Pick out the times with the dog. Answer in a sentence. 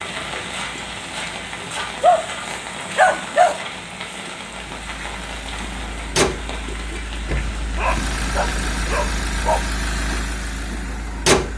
You can hear the dog from 2.0 to 3.5 s and from 7.8 to 9.7 s.